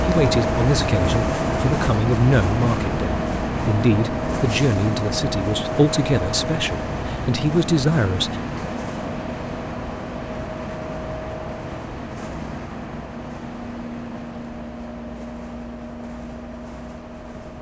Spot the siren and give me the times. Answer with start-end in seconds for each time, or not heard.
not heard.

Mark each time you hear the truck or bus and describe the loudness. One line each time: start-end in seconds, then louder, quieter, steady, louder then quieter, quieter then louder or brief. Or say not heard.
0.0-17.5 quieter.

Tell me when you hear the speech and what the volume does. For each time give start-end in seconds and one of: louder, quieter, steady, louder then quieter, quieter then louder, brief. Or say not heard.
0.0-8.4 steady.